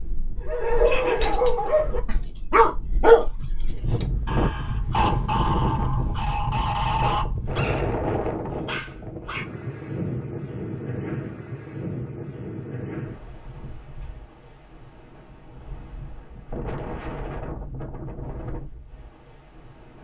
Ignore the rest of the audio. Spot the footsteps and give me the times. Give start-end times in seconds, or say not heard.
not heard.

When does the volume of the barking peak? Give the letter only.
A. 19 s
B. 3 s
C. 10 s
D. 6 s
B.